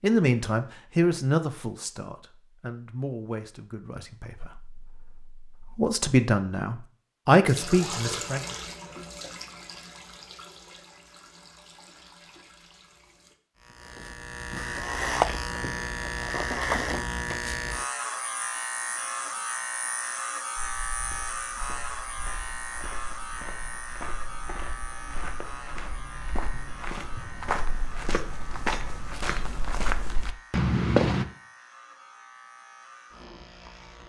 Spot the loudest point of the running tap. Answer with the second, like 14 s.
8 s.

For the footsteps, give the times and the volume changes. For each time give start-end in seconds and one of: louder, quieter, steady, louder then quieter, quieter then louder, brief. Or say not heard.
20.6-31.2 louder.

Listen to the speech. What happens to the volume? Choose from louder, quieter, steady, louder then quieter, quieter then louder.
quieter then louder.